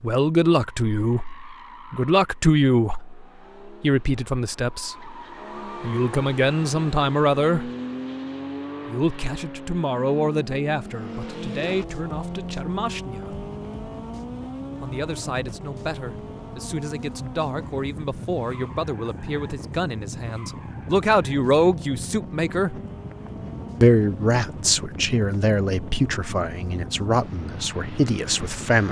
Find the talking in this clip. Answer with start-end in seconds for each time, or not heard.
0.0-5.2, 5.8-7.7, 8.8-13.4, 14.8-22.8, 23.8-28.8.